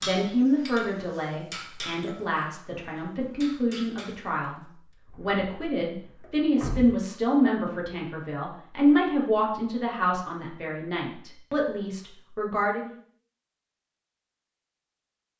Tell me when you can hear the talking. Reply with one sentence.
The talking can be heard from 0.0 to 12.9 s.